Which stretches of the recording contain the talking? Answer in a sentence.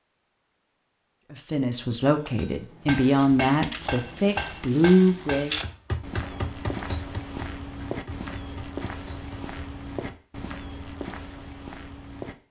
The talking can be heard from 1.3 to 5.6 s.